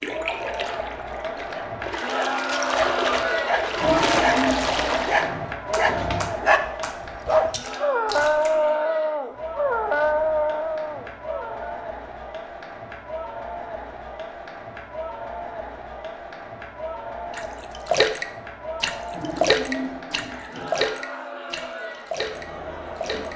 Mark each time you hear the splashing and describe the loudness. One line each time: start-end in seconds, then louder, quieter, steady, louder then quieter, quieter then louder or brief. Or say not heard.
0.0-8.7 louder then quieter
17.4-23.3 quieter.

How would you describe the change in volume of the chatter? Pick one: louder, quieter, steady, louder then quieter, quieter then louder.
quieter.